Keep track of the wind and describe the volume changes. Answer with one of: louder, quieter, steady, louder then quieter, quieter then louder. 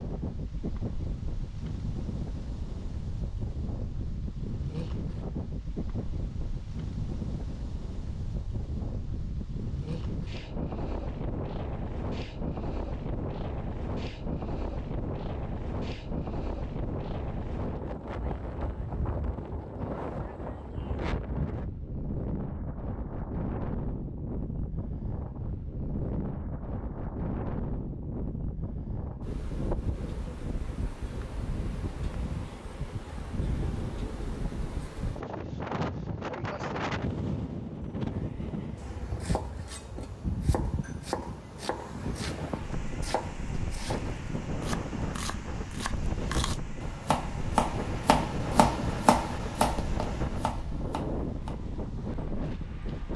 steady.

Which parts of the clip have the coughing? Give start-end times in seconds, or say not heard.
not heard.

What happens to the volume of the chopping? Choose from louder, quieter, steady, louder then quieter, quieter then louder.
louder.